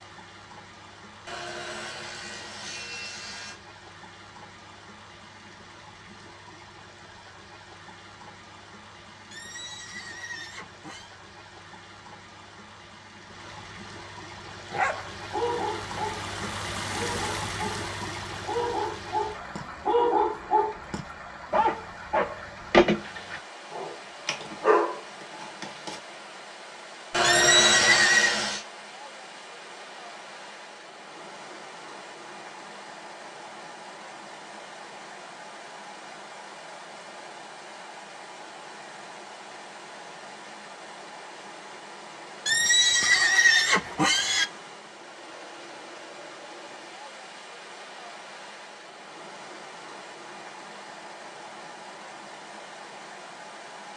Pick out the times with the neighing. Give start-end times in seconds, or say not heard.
9.3-11.1, 27.2-28.4, 42.5-44.5.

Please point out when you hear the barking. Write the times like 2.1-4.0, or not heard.
14.7-26.0.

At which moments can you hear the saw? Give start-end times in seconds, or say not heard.
1.2-3.6, 27.1-28.6.